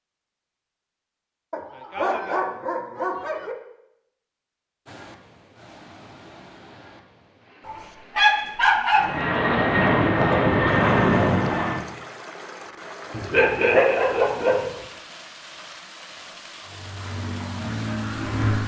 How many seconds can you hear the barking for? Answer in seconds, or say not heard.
5 s.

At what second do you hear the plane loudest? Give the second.
11 s.